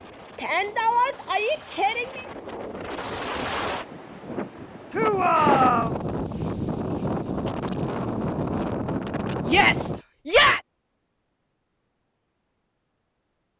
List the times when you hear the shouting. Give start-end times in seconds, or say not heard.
0.3-2.2, 4.9-6.0, 9.4-10.6.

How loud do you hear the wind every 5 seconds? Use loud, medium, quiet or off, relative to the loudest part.
medium, loud, off.